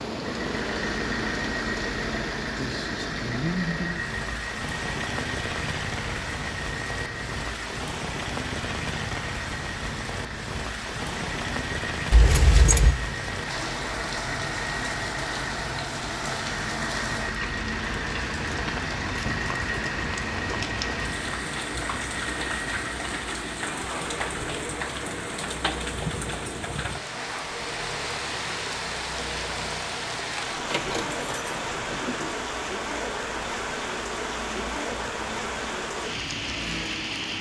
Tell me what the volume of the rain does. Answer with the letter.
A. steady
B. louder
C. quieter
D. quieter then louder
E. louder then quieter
A.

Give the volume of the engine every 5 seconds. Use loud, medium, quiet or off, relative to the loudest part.
loud, loud, loud, loud, loud, medium, medium, medium.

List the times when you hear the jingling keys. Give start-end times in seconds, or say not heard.
12.1-12.9, 30.5-32.3.